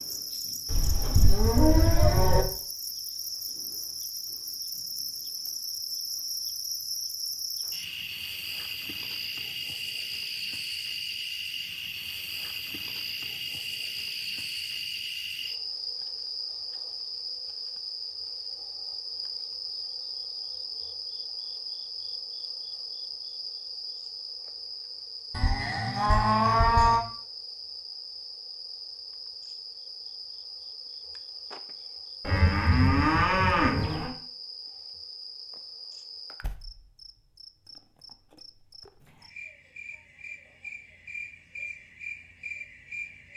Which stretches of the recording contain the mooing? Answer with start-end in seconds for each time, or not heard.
0.7-2.5, 25.3-27.1, 32.2-34.1.